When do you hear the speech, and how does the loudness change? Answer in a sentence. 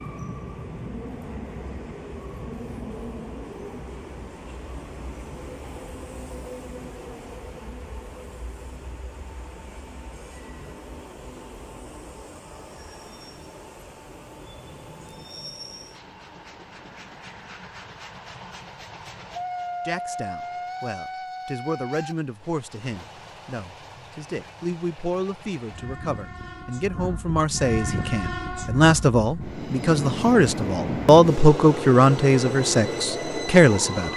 The speech can be heard from 19.9 to 34.1 s, getting louder.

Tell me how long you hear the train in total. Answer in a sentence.
You can hear the train for 34 seconds altogether.